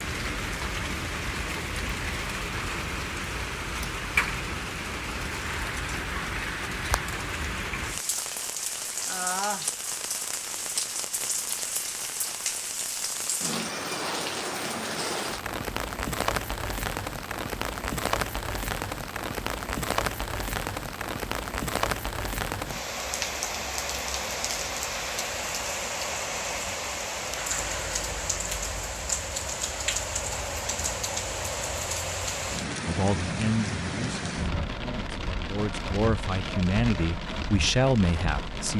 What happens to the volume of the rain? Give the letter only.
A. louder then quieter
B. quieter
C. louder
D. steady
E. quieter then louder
D.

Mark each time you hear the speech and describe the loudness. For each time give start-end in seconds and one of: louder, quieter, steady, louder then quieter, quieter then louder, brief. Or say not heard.
32.9-38.7 quieter then louder.